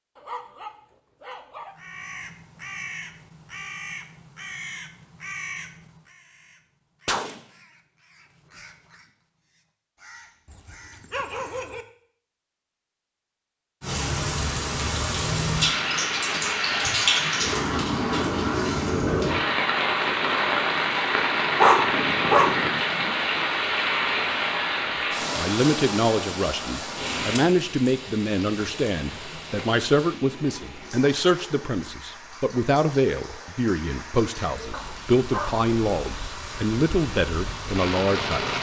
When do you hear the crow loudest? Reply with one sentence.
The loudest moment of the crow is at 7 seconds.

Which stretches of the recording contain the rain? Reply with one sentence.
The rain can be heard from 13.8 to 38.5 s.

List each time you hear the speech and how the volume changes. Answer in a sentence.
The speech can be heard from 25.4 to 38.5 s, at a steady volume.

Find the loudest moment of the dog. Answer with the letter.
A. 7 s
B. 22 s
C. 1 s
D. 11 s
B.